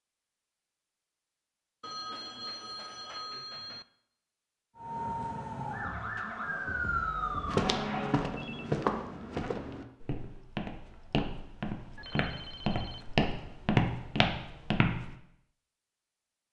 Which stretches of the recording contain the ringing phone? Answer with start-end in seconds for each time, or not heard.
1.8-3.9, 8.3-8.8, 11.9-13.3.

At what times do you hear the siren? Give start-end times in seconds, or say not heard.
4.8-8.3.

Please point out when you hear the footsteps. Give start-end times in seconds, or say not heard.
7.5-15.2.